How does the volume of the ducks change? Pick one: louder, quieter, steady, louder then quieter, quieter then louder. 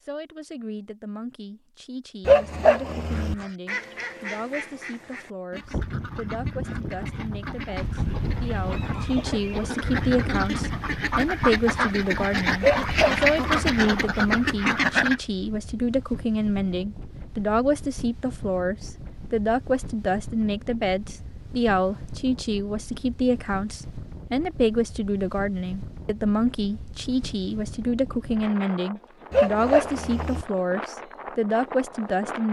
louder.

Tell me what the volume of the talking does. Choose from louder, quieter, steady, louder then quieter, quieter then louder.
louder.